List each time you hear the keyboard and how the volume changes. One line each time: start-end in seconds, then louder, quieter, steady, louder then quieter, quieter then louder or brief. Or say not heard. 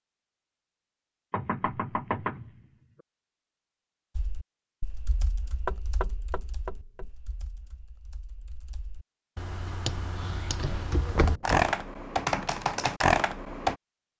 4.2-13.8 quieter then louder.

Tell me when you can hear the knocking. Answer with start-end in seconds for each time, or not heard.
1.3-2.6, 5.7-7.1, 11.1-11.8.